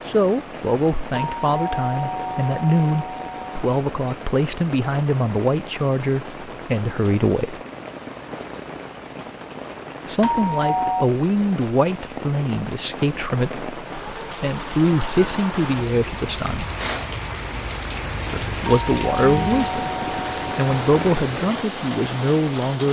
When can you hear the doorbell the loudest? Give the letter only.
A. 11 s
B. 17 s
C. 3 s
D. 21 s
A.